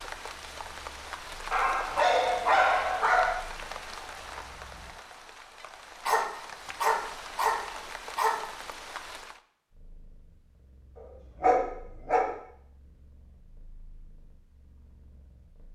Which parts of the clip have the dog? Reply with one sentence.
You can hear the dog from 1.5 to 3.4 s, from 6.0 to 8.3 s and from 10.9 to 12.3 s.